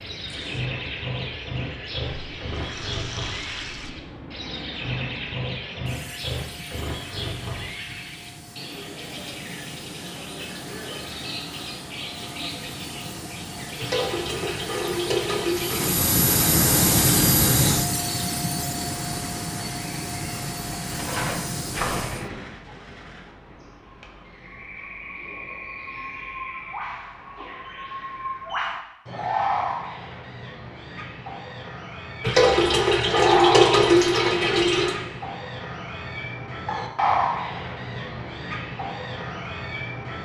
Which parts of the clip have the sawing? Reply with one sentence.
The sawing can't be heard in this clip.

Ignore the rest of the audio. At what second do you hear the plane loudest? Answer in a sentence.
The volume of the plane peaks at 17 seconds.